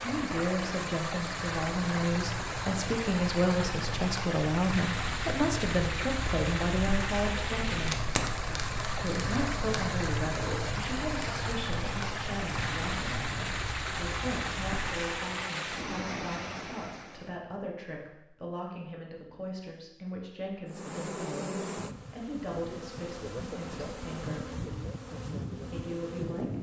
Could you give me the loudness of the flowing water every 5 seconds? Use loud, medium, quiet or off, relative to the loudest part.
loud, loud, loud, loud, off, off.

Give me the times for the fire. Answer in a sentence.
You can hear the fire from 0.0 to 15.1 s.